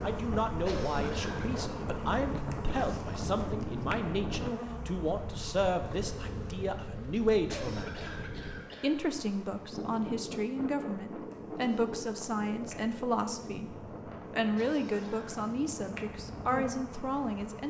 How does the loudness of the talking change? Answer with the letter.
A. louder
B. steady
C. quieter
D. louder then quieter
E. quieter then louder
B.